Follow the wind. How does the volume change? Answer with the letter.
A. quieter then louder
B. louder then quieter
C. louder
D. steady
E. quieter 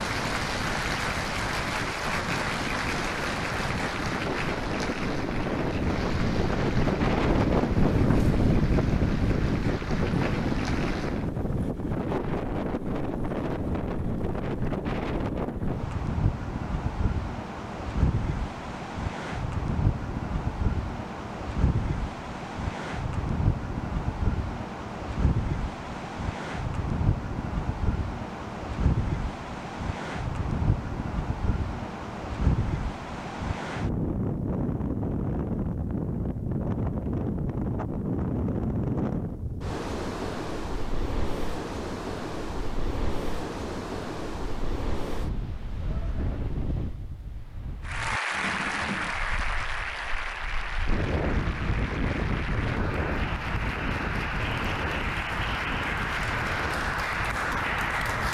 E.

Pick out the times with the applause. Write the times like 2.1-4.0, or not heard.
0.0-11.3, 47.8-58.2.